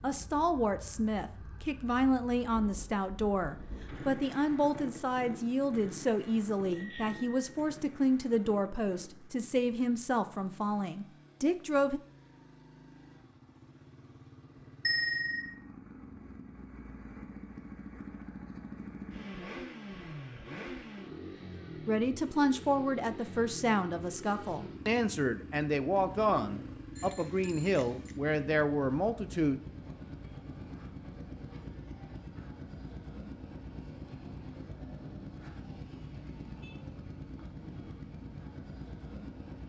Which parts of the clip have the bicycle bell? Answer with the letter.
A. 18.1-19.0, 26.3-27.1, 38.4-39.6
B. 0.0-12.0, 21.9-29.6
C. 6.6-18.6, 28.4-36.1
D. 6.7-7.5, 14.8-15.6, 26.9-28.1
D.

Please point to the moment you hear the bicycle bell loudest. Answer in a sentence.
The loudest moment of the bicycle bell is at 15 seconds.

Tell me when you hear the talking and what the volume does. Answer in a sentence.
The talking can be heard from 0.0 to 12.0 s, at a steady volume; and from 21.9 to 29.6 s, at a steady volume.